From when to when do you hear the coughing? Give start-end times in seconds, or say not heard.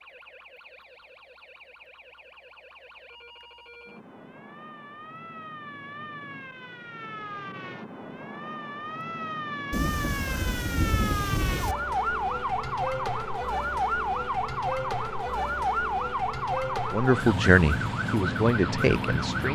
not heard.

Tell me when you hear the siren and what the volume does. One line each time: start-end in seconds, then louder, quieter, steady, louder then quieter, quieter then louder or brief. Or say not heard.
0.0-19.4 louder.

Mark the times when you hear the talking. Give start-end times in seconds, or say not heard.
16.9-19.4.